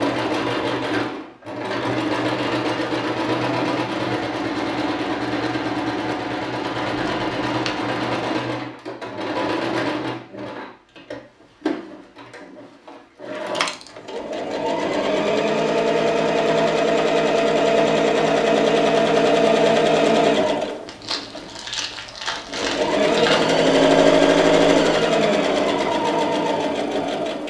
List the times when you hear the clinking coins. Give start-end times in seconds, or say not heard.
13.3-13.9.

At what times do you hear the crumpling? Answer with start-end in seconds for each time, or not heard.
6.8-7.8, 20.9-23.6.